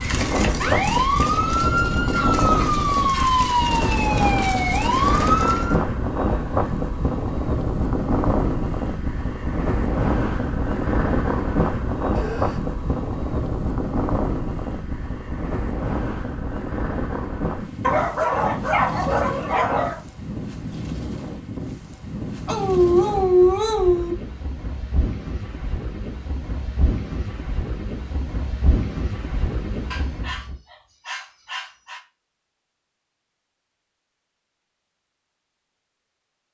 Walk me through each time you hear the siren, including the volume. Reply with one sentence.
The siren can be heard from 0.0 to 5.8 s, at a steady volume.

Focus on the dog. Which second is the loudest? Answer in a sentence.
The volume of the dog peaks at 23 seconds.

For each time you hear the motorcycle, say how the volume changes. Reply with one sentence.
You can't hear the motorcycle here.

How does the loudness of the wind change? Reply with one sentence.
The loudness of the wind goes down.